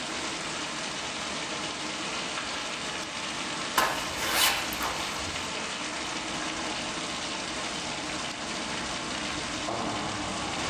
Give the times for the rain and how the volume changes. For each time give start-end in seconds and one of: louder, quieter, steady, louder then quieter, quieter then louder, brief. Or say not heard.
0.0-10.6 steady.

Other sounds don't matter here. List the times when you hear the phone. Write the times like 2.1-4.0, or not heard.
not heard.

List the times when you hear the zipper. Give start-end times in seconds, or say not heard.
3.8-5.5.